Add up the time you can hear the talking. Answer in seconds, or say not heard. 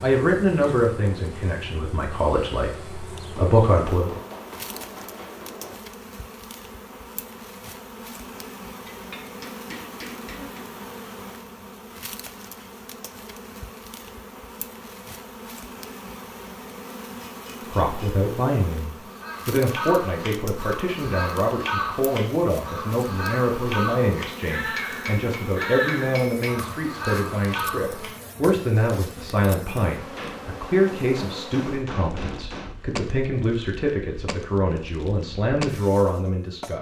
23 s.